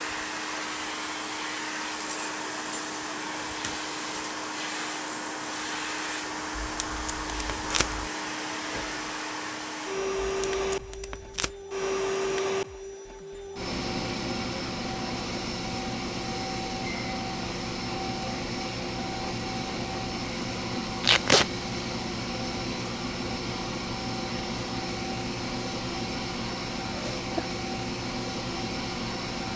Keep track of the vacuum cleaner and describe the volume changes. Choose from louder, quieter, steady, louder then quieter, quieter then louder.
steady.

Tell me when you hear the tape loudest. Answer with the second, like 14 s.
21 s.